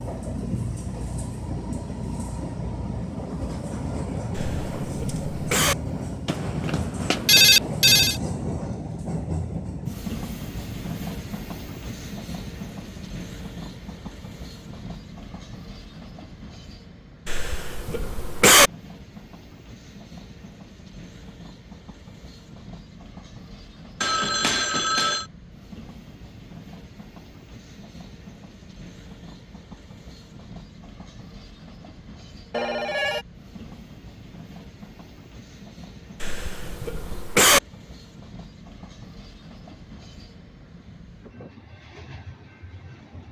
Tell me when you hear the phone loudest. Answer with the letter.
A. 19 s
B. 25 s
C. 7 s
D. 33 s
C.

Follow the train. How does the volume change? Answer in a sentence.
The loudness of the train goes down.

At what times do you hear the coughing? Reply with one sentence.
The coughing can be heard from 4.3 to 5.8 s, from 17.2 to 18.7 s and from 36.2 to 37.6 s.